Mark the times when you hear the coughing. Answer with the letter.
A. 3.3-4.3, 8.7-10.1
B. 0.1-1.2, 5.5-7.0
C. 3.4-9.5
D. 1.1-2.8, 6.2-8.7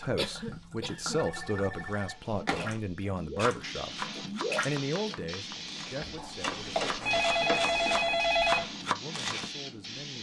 B.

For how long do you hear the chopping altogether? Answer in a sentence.
The chopping can be heard for 6 seconds in total.